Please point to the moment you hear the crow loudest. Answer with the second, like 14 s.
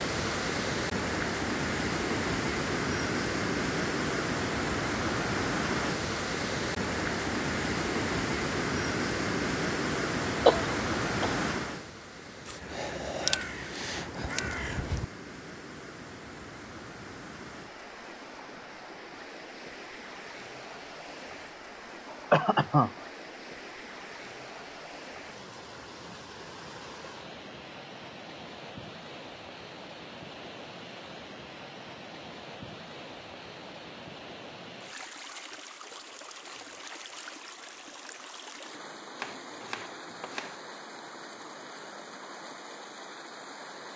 13 s.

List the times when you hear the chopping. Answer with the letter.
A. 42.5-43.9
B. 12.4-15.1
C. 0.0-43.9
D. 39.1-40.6
D.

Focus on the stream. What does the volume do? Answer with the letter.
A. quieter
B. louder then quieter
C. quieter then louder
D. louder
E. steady
A.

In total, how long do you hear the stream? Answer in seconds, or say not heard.
44 s.